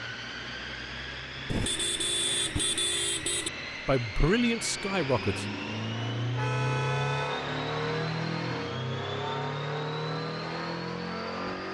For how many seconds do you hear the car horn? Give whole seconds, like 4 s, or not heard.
3 s.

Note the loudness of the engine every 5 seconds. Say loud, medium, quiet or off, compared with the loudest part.
medium, loud, loud.